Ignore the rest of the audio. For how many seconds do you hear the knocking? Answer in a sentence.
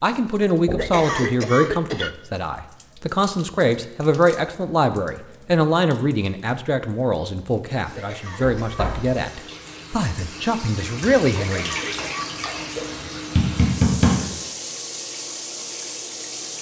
You can hear the knocking for 2 seconds altogether.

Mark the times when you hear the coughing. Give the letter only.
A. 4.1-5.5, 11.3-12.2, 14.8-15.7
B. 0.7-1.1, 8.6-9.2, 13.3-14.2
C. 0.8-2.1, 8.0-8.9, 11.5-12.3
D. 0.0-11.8
C.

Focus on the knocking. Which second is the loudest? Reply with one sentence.
The loudest moment of the knocking is at 14 seconds.